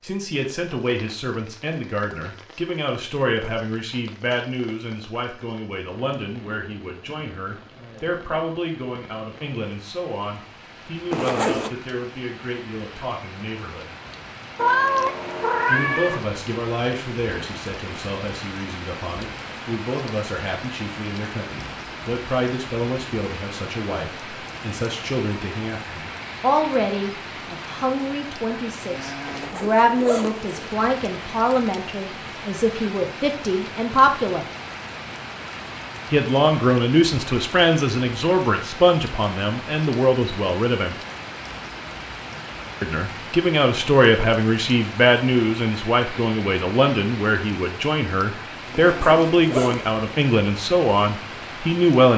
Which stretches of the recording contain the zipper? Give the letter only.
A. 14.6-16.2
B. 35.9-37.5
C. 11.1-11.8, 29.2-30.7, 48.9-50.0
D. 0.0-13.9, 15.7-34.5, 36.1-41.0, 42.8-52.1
C.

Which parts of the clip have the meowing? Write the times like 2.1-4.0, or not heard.
14.6-16.2.